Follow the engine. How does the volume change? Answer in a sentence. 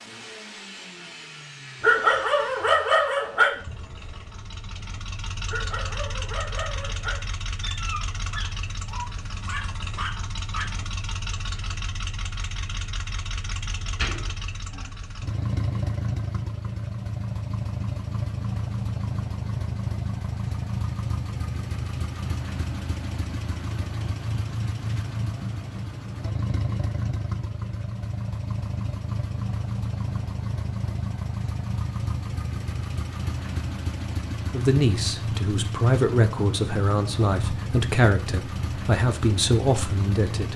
The loudness of the engine goes up.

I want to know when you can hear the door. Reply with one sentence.
You can hear the door from 13.8 to 14.9 s.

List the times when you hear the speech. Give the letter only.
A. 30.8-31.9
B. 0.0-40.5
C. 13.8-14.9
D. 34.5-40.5
D.